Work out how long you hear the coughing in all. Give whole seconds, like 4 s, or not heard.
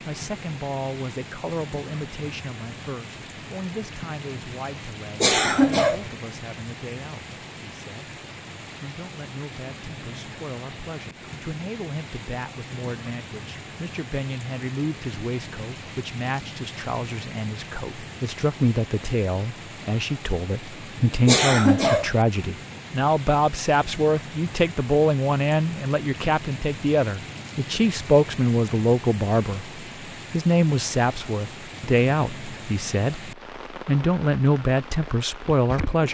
2 s.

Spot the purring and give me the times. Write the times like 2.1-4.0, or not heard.
not heard.